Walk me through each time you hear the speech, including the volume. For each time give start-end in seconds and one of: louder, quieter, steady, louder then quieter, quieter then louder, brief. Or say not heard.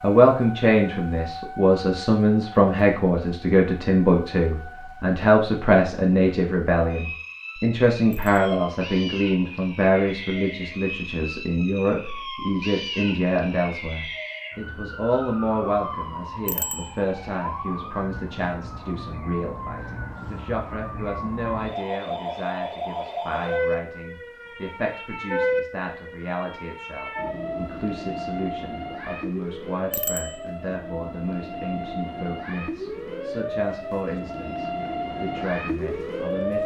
0.0-36.6 quieter.